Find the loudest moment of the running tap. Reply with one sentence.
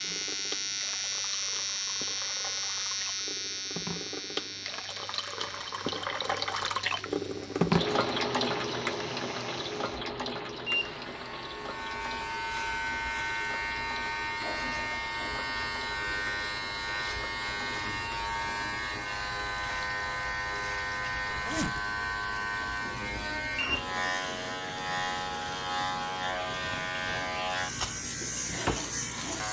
The loudest moment of the running tap is at 8 seconds.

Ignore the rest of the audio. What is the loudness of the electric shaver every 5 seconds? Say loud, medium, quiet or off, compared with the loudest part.
loud, quiet, loud, loud, loud, loud.